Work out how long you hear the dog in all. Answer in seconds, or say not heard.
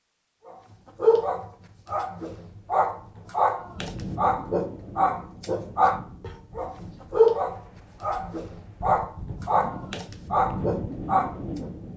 11 s.